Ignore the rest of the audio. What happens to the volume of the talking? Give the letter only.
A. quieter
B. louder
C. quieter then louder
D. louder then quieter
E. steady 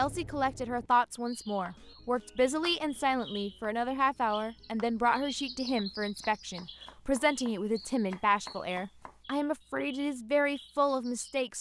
E.